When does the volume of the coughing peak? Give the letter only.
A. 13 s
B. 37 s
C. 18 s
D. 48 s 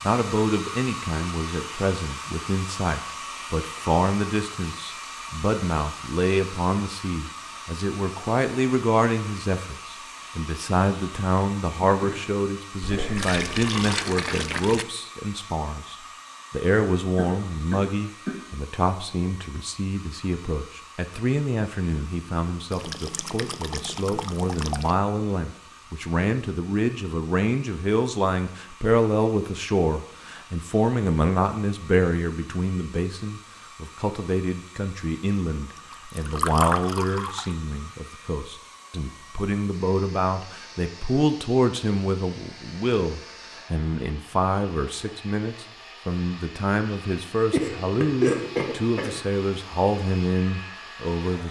D.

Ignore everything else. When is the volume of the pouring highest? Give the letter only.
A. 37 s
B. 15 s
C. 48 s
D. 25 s
A.